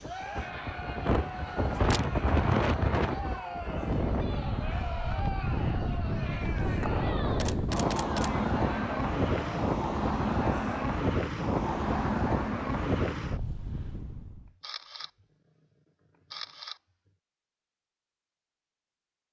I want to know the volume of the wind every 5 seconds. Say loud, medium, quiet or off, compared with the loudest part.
loud, loud, loud, off.